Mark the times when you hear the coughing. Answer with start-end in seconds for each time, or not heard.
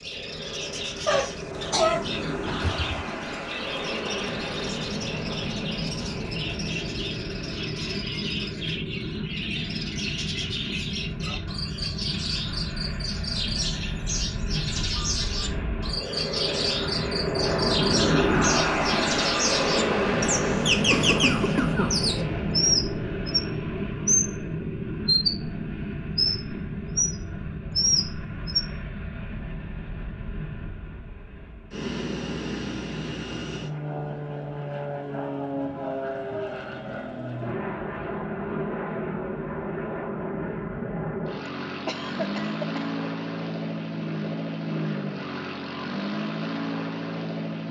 1.1-3.0, 20.9-22.1, 41.9-42.9.